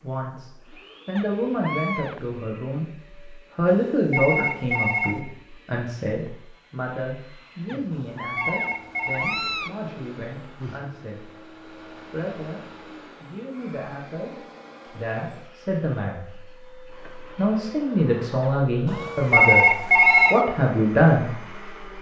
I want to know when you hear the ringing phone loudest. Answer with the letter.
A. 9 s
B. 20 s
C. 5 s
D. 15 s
B.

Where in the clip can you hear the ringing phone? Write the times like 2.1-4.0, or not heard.
3.6-5.2, 7.9-9.4, 18.9-20.4.